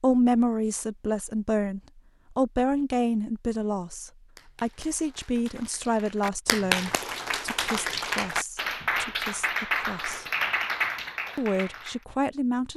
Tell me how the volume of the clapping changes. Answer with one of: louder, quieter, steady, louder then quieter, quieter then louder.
louder.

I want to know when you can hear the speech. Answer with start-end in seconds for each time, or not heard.
0.0-10.2, 11.3-12.7.